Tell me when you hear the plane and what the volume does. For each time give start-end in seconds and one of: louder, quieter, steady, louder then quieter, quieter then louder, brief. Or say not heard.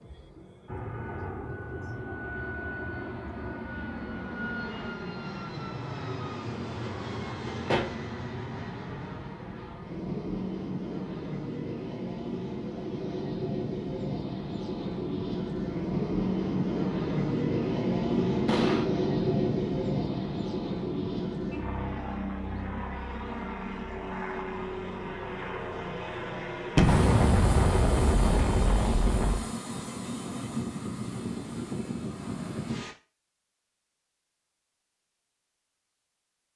0.0-33.0 louder then quieter.